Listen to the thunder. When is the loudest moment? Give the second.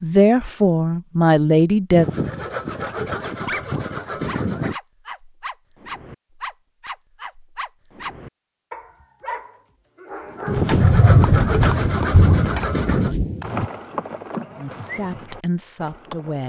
11 s.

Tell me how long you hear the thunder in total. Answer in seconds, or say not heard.
3 s.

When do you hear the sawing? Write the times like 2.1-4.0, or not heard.
1.9-4.8, 10.4-13.2.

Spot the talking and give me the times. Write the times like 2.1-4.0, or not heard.
0.0-2.0, 14.6-16.4.